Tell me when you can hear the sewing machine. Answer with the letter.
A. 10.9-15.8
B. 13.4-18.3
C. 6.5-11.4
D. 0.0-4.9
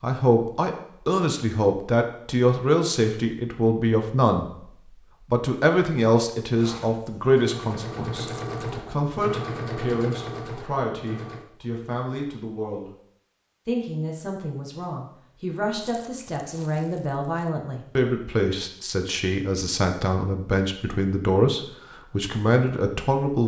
C.